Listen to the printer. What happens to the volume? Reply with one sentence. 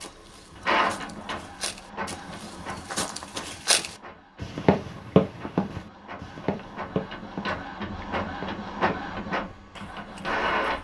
The loudness of the printer goes down, then up.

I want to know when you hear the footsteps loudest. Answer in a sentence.
The volume of the footsteps peaks at 5 seconds.